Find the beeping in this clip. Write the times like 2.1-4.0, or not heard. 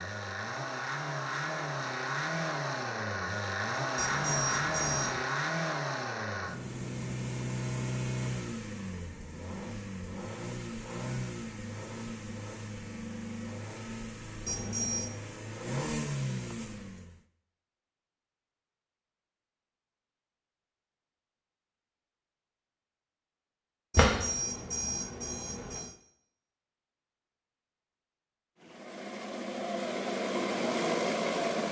4.0-5.2, 14.4-15.2, 23.9-25.9.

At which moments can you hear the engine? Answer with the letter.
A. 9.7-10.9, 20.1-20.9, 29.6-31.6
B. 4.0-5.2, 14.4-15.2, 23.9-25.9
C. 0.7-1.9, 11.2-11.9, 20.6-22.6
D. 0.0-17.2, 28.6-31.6
D.